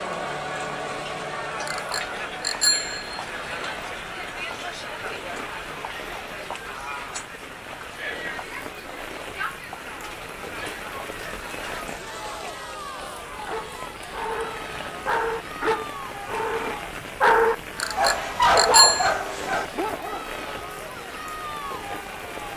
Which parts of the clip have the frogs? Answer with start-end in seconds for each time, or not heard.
not heard.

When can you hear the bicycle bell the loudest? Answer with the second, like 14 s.
19 s.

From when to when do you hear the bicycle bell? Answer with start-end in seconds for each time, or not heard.
1.6-3.2, 17.8-19.1.